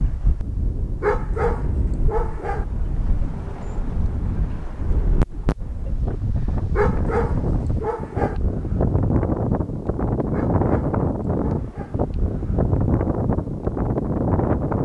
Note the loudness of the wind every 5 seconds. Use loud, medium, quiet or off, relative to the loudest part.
medium, loud, loud.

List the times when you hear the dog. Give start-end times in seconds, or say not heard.
1.0-2.6, 6.7-8.4, 10.3-11.9.